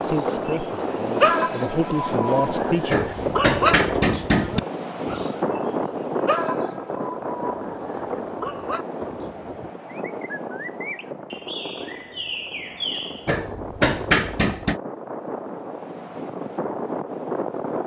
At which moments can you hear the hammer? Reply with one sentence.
You can hear the hammer from 2.9 to 4.6 s and from 13.2 to 14.8 s.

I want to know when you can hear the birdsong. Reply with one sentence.
The birdsong can be heard from 0.0 to 13.3 s.